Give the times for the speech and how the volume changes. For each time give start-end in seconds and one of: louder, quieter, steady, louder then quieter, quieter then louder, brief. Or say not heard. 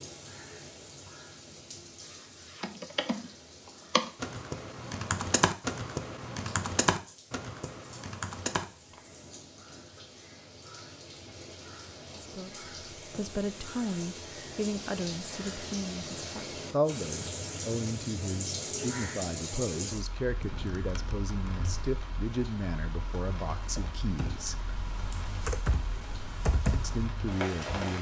12.2-24.6 steady
26.8-27.9 brief.